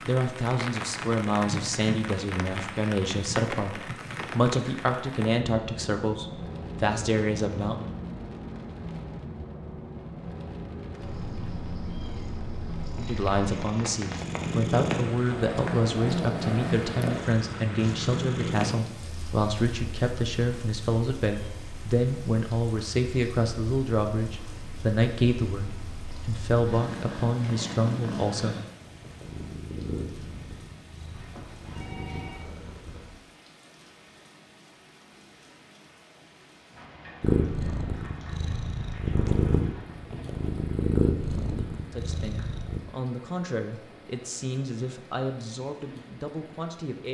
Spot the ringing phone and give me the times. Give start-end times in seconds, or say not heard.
31.1-32.5.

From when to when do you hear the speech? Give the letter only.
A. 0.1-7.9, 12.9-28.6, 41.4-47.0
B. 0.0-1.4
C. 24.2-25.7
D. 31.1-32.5
A.